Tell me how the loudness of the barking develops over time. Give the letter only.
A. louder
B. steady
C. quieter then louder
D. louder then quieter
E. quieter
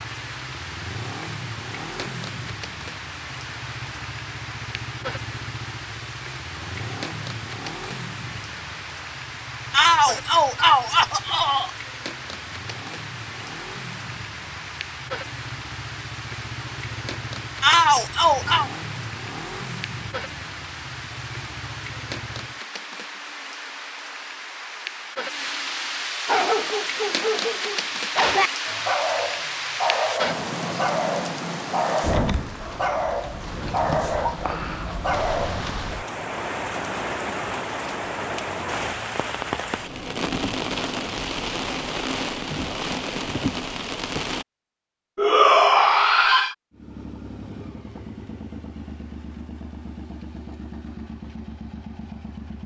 B.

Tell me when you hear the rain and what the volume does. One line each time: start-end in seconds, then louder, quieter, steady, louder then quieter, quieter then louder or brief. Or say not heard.
0.0-44.5 louder.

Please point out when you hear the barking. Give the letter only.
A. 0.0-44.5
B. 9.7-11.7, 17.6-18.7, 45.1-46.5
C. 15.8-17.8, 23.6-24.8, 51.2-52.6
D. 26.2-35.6
D.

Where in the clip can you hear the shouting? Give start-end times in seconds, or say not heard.
9.7-11.7, 17.6-18.7, 45.1-46.5.